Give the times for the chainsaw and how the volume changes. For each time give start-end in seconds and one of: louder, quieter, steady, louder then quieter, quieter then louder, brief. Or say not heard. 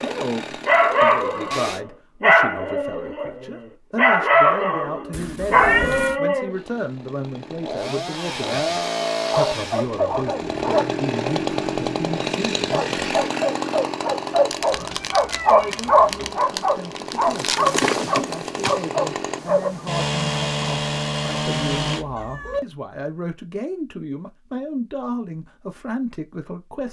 0.0-1.8 brief
6.5-22.1 steady.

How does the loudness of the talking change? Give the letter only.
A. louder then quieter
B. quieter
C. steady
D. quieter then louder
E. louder
C.